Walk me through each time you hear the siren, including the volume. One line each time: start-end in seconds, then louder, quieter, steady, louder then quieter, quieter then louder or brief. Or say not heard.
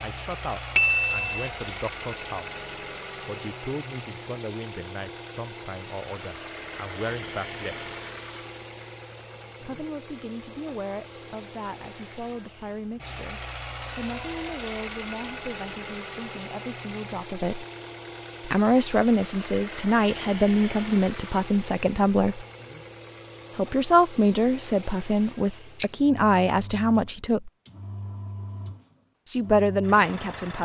not heard.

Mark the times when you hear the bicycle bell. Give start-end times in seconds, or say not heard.
0.8-1.4, 25.8-26.4.